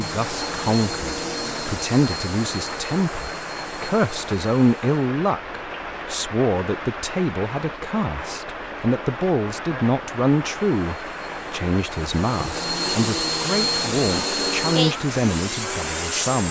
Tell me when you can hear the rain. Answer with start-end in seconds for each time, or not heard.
0.0-16.4.